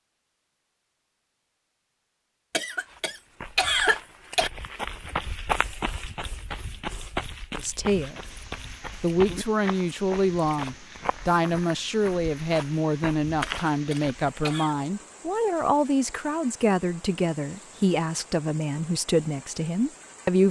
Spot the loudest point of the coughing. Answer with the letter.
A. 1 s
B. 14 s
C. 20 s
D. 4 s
D.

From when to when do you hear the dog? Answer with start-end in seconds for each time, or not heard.
not heard.